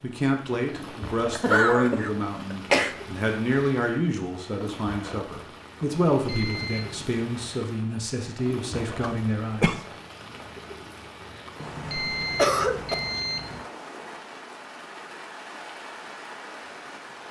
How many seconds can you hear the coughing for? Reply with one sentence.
The coughing can be heard for 3 seconds in total.